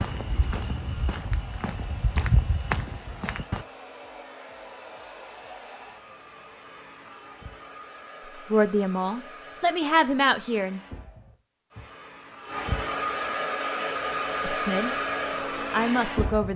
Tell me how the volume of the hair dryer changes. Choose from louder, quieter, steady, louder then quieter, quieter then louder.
louder.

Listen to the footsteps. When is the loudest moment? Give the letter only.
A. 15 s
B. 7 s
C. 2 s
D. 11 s
C.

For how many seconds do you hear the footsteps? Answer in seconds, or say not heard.
4 s.